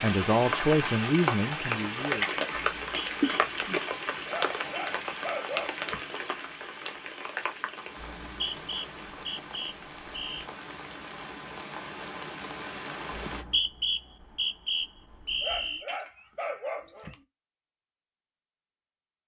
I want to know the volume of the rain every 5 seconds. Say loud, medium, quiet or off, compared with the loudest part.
loud, medium, medium, off.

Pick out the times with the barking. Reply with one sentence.
The barking can be heard from 4.2 to 6.0 s and from 15.3 to 17.1 s.